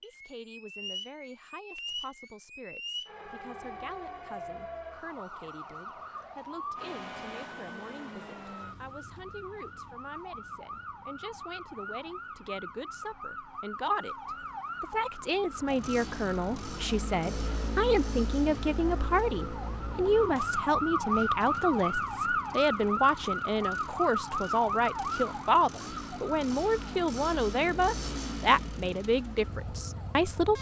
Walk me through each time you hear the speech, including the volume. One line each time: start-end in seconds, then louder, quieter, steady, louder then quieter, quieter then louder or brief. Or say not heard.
0.0-30.5 louder.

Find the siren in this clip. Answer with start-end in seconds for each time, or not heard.
0.0-30.5.